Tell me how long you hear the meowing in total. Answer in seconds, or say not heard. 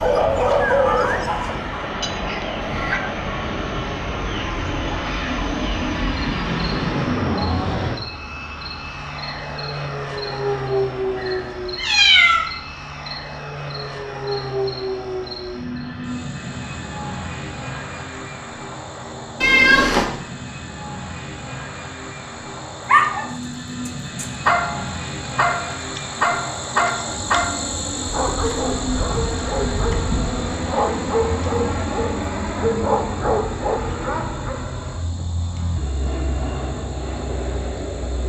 2 s.